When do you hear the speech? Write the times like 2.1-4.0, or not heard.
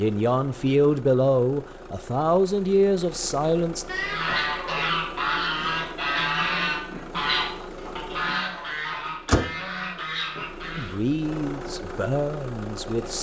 0.0-3.9, 10.8-13.1.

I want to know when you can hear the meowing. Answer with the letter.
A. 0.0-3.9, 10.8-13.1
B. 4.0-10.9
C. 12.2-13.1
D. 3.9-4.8
D.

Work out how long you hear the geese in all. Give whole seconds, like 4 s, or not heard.
7 s.